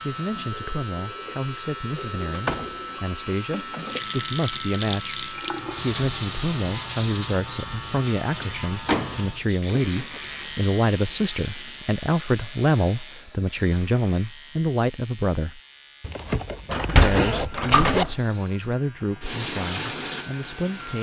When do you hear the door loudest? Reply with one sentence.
The loudest moment of the door is at 17 seconds.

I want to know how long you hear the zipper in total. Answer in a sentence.
You can hear the zipper for 2 seconds altogether.